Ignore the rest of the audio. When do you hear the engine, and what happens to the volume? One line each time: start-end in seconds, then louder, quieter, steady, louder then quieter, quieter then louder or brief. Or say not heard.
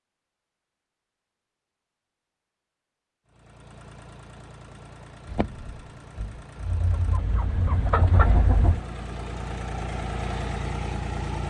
3.2-11.4 louder.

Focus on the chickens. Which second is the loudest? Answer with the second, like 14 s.
8 s.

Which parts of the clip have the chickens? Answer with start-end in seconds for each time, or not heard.
5.2-8.8.